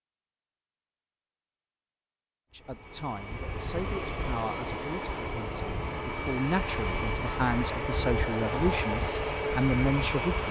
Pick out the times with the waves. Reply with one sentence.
You can't hear the waves here.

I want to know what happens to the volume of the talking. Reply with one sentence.
The volume of the talking goes up.